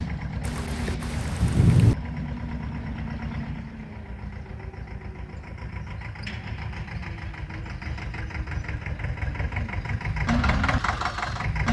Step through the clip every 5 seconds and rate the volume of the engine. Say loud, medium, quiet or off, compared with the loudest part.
medium, medium, loud.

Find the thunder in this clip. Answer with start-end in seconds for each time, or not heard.
0.4-1.9.